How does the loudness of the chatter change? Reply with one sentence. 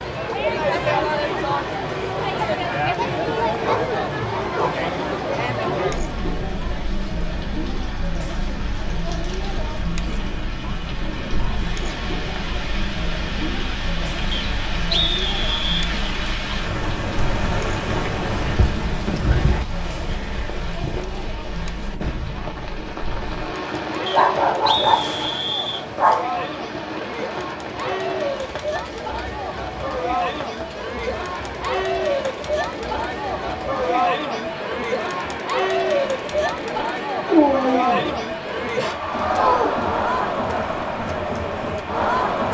The volume of the chatter goes down, then up.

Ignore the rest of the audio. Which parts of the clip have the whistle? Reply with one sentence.
You can hear the whistle from 14.3 to 15.8 s and from 24.1 to 25.9 s.